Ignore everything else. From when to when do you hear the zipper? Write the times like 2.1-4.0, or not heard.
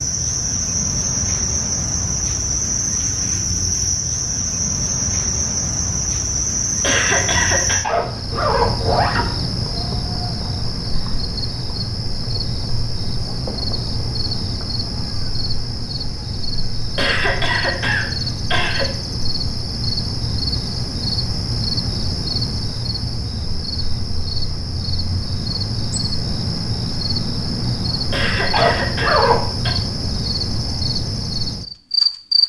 7.8-9.3, 28.5-29.4.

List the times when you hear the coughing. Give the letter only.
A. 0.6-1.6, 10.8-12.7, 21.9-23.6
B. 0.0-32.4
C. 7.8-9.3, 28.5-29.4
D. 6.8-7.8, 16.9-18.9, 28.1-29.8
D.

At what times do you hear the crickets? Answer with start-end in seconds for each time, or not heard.
0.0-32.4.